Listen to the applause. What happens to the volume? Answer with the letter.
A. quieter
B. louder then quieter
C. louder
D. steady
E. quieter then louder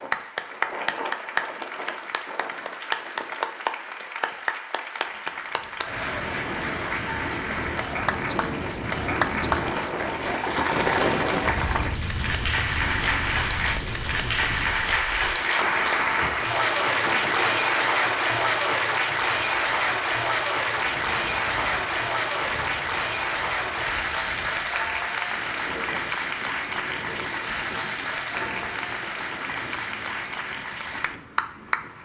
B.